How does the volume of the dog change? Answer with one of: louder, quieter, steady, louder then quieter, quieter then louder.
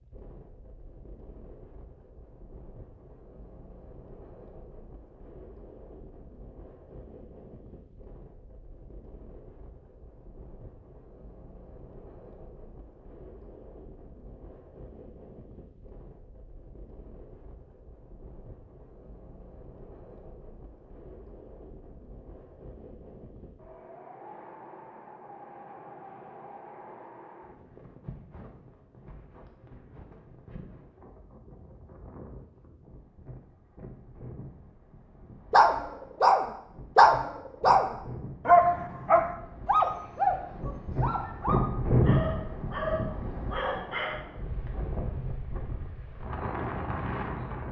quieter.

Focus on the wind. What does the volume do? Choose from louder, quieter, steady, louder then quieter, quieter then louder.
louder.